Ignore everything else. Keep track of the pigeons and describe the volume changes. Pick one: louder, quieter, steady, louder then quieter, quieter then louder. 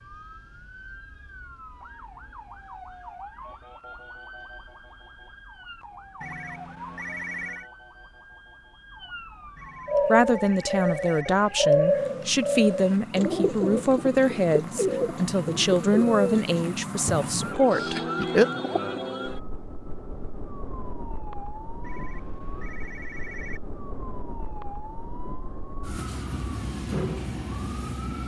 quieter.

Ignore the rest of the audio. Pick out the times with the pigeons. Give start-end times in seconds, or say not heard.
9.8-19.0.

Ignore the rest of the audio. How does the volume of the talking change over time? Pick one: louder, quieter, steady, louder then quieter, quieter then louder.
steady.